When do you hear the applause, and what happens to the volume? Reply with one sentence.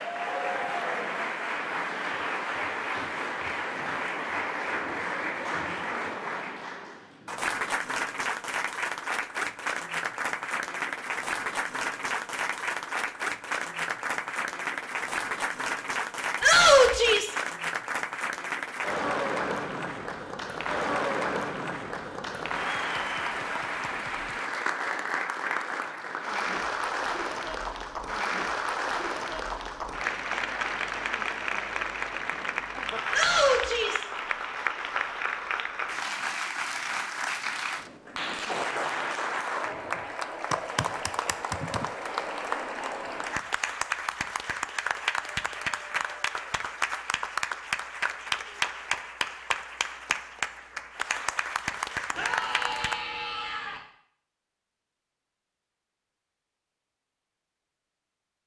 The applause can be heard from 0.0 to 53.0 s, at a steady volume.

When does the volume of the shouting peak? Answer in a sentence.
The volume of the shouting peaks at 17 seconds.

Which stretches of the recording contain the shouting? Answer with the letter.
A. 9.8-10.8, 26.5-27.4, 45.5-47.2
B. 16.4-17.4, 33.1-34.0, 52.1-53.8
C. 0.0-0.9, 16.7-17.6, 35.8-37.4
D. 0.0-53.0
B.